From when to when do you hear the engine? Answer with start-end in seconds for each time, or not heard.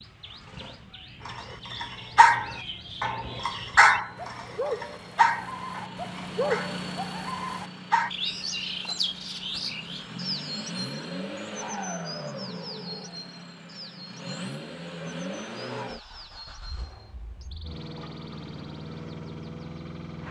0.0-20.2.